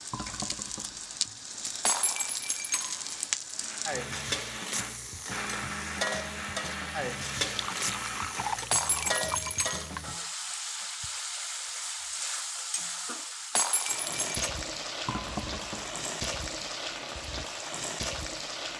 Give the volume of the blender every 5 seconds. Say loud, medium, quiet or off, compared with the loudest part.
loud, loud, off, off.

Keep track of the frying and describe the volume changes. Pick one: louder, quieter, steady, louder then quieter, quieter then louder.
steady.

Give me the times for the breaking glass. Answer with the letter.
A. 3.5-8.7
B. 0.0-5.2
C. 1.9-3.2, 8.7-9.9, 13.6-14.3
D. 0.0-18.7
C.